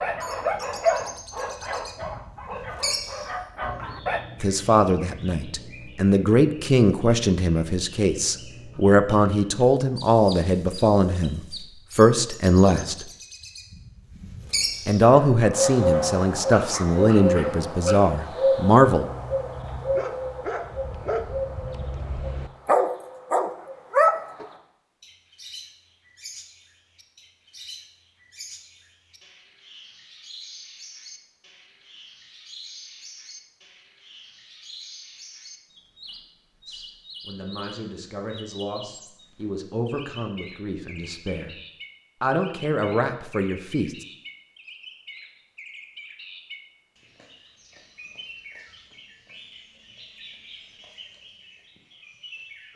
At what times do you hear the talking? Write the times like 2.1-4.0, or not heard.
4.4-13.1, 14.8-19.1, 36.6-41.5, 42.2-44.0.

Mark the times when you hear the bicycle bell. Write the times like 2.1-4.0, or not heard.
not heard.